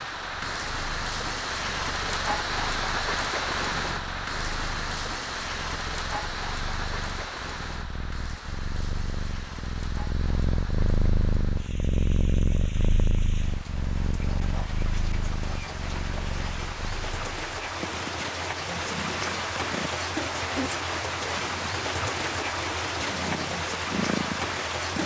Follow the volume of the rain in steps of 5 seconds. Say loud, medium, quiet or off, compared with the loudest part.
loud, medium, quiet, loud, loud.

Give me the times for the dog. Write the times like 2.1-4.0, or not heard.
not heard.